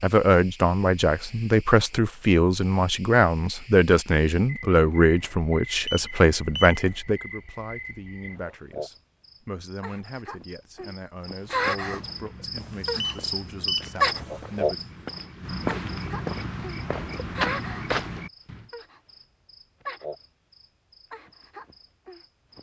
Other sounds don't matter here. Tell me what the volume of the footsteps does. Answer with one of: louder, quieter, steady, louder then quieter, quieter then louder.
louder.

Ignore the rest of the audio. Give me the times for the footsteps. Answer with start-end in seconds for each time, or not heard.
11.3-18.6.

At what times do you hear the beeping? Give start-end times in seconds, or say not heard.
5.8-6.9, 13.0-13.9.